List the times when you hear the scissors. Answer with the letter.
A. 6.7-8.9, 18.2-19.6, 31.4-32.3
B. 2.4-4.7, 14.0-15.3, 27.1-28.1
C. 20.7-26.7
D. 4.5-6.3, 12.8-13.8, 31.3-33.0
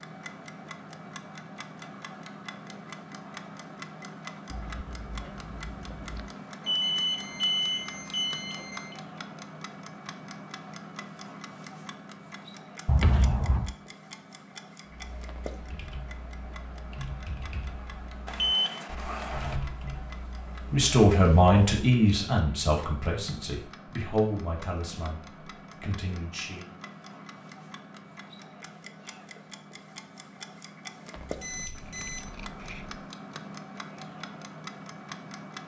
D.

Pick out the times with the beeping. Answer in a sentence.
The beeping can be heard from 6.7 to 8.9 s, from 18.2 to 19.6 s and from 31.4 to 32.3 s.